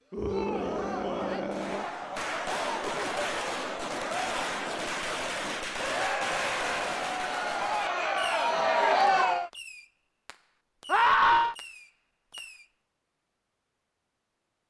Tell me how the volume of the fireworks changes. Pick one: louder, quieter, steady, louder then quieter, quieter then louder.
quieter.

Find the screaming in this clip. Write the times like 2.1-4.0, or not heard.
0.1-1.9, 5.8-6.9, 10.8-11.6.